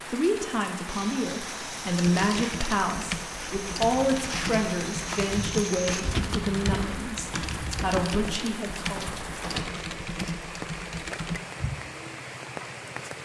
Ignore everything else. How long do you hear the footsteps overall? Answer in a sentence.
The footsteps can be heard for 9 seconds in total.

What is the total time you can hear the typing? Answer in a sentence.
You can hear the typing for 10 seconds altogether.